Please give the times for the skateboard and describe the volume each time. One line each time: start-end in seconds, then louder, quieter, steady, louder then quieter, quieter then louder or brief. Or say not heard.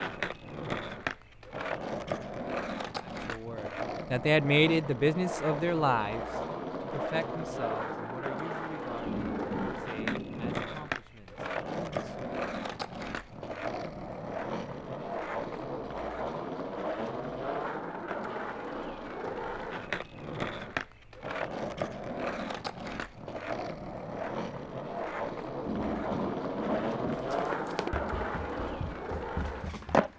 0.0-30.1 steady.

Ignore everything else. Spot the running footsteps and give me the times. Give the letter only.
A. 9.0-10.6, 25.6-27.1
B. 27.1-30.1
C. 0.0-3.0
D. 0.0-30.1
B.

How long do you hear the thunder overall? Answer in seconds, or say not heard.
3 s.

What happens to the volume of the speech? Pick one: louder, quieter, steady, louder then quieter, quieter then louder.
quieter.